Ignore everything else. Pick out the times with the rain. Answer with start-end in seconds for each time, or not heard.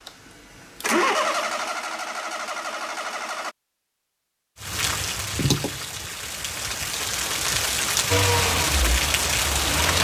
4.6-9.9.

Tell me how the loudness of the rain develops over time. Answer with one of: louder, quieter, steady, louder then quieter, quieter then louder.
quieter then louder.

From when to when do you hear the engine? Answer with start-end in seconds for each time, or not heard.
0.0-3.5, 8.1-9.9.